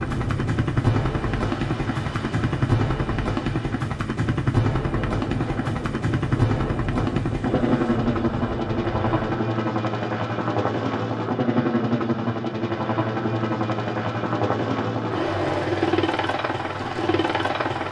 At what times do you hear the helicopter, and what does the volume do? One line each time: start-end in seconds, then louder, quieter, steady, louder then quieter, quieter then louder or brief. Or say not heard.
0.0-17.8 steady.